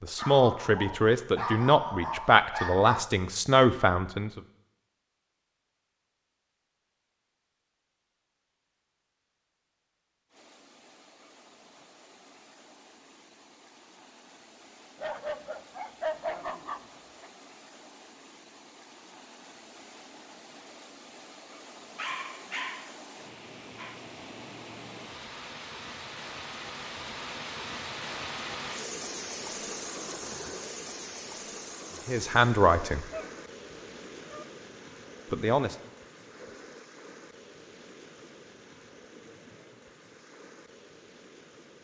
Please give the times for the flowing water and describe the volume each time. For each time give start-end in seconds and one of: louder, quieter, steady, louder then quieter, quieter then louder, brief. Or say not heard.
10.2-41.7 louder then quieter.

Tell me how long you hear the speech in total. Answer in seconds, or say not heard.
6 s.